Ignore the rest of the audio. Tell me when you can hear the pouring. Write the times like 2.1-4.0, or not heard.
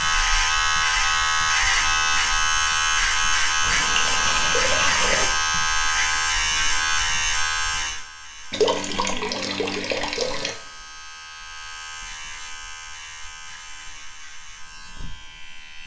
3.6-5.3, 8.5-10.6.